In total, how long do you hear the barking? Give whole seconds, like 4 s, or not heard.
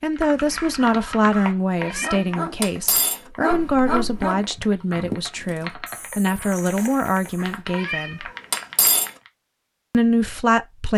7 s.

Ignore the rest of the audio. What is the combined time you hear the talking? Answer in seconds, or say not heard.
9 s.